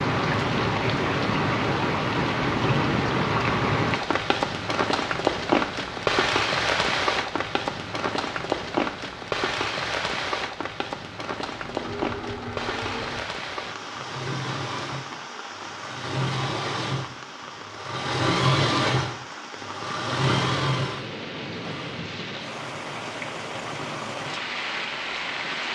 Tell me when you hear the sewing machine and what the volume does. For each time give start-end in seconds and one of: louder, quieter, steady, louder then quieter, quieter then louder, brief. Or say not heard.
11.5-22.0 louder.